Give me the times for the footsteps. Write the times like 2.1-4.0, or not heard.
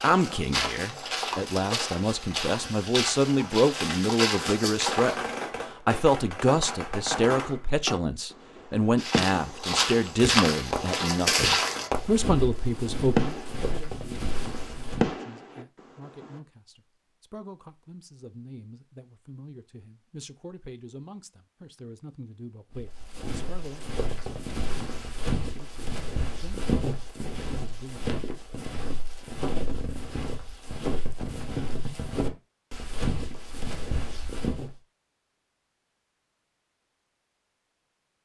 0.0-5.3, 8.9-15.2, 22.7-34.8.